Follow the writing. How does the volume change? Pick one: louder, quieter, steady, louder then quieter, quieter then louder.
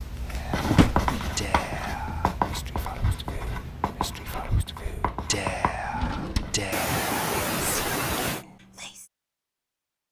quieter.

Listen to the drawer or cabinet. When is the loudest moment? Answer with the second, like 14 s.
1 s.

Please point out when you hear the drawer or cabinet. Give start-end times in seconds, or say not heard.
0.7-1.1, 5.8-6.7.